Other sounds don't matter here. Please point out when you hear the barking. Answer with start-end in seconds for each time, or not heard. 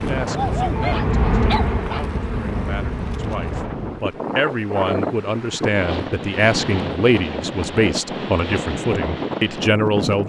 0.3-2.0.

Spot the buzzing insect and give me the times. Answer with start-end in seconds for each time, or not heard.
0.0-4.0.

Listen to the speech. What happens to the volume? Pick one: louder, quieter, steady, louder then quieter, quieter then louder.
louder.